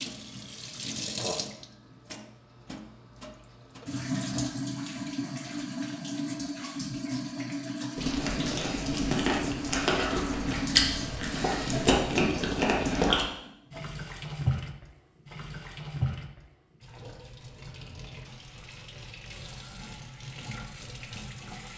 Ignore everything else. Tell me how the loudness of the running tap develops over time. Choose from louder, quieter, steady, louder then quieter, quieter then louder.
quieter.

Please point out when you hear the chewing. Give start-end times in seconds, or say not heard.
8.0-13.2.